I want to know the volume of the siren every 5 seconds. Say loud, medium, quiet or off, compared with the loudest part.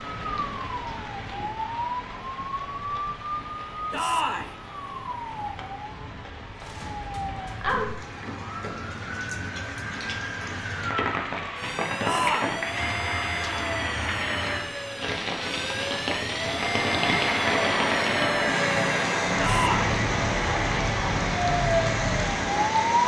medium, medium, medium, medium, loud.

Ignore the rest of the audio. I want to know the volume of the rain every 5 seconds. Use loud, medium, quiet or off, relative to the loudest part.
medium, medium, loud, loud, loud.